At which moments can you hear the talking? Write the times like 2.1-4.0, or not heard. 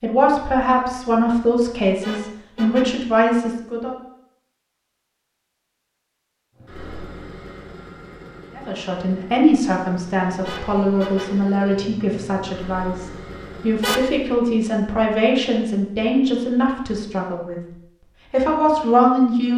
0.0-4.0, 8.6-17.6, 18.3-19.5.